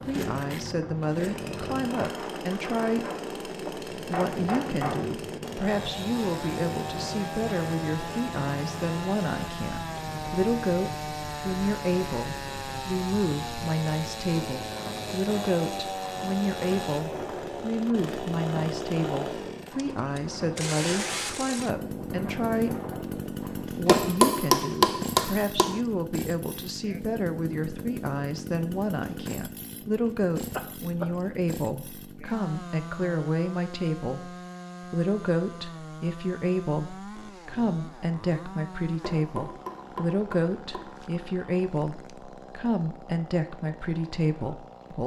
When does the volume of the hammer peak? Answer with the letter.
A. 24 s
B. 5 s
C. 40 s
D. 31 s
A.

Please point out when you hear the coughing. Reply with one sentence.
The coughing can be heard from 30.5 to 31.1 s.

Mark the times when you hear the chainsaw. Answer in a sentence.
You can hear the chainsaw from 0.0 to 45.0 s.